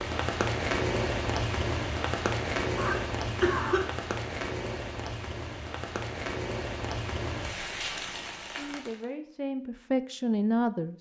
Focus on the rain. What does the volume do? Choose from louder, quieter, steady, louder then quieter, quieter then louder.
quieter.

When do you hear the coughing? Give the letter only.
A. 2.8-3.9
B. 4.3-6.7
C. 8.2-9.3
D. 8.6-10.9
A.